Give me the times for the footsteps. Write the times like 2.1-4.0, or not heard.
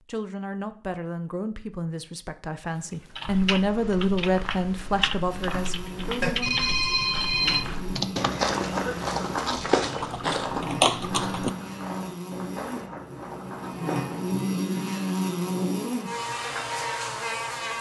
3.2-14.4.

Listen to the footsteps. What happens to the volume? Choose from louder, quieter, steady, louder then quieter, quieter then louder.
louder then quieter.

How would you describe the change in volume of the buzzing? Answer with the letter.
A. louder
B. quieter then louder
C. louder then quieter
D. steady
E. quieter
A.